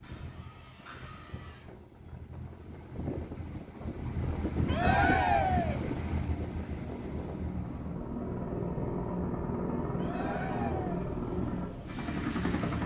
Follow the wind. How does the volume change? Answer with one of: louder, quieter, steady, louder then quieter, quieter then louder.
louder then quieter.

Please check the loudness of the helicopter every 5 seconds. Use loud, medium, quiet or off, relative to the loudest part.
off, loud, loud.